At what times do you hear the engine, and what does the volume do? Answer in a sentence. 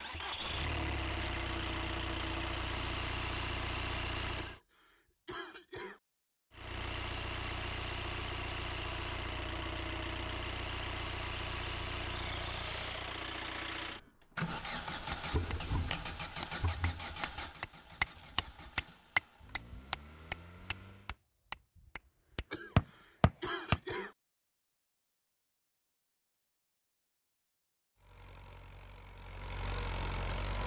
The engine can be heard from 0.0 to 4.6 s, at a steady volume; from 6.5 to 21.2 s, getting quieter; and briefly from 27.9 to 30.6 s.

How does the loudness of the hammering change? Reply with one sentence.
The volume of the hammering goes up, then down.